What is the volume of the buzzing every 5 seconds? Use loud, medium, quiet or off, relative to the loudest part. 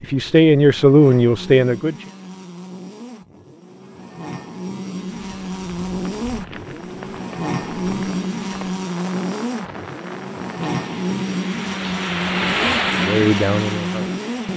medium, loud, loud.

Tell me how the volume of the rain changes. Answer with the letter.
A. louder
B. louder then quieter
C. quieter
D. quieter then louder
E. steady
A.